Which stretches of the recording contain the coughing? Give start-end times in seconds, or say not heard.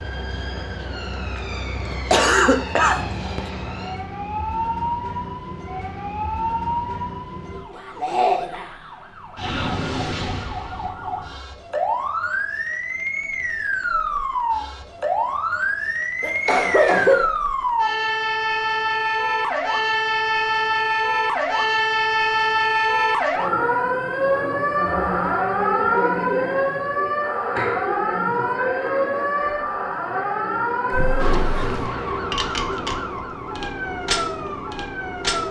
1.9-3.4, 16.2-17.2, 30.9-31.9.